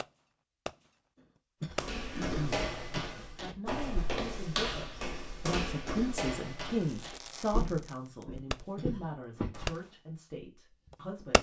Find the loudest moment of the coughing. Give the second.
2 s.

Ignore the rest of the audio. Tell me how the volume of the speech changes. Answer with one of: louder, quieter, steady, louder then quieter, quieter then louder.
louder then quieter.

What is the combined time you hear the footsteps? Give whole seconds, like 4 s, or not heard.
8 s.